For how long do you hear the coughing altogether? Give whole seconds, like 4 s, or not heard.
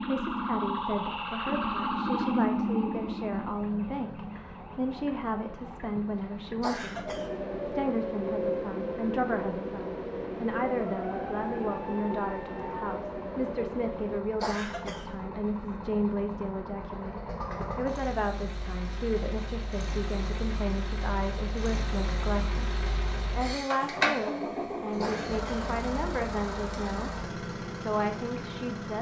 2 s.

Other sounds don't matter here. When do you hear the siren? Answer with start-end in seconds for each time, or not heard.
0.0-14.2.